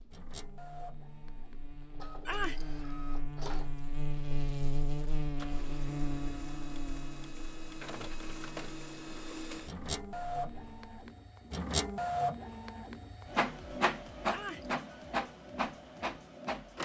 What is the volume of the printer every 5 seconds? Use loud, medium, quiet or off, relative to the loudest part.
quiet, medium, loud, loud.